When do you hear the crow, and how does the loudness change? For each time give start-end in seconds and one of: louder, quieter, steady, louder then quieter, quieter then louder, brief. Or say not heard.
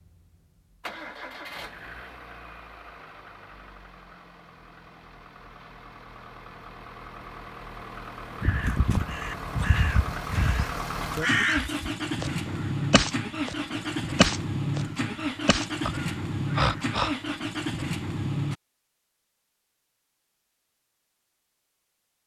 8.4-13.6 steady
14.2-14.8 brief
15.4-17.1 brief.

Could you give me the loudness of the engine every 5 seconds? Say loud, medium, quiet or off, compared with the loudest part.
quiet, medium, loud, loud, off.